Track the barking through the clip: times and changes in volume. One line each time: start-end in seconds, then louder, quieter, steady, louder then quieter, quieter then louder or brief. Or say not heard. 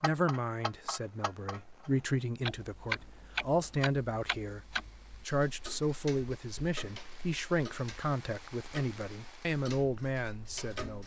not heard.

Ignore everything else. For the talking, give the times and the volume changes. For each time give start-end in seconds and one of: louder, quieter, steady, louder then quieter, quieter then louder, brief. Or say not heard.
0.0-11.0 steady.